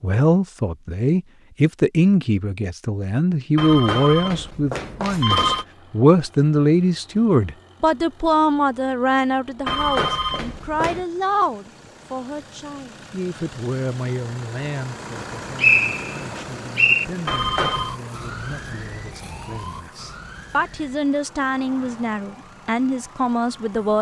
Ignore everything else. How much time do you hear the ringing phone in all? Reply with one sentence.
You can hear the ringing phone for 4 seconds altogether.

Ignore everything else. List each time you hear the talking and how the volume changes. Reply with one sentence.
The talking can be heard from 0.0 to 23.9 s, getting quieter then louder.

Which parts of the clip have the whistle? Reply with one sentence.
You can hear the whistle from 15.2 to 17.1 s.